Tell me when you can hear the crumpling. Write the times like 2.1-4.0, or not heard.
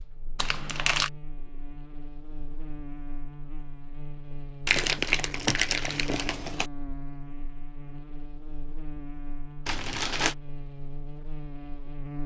0.3-1.1, 4.7-6.7, 9.7-10.3.